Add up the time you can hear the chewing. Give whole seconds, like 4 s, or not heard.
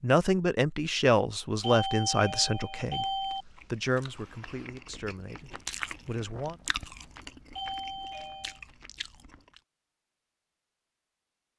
7 s.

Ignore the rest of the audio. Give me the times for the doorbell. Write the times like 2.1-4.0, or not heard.
1.6-3.5, 7.5-8.6.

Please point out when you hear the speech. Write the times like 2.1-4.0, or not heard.
0.0-6.5.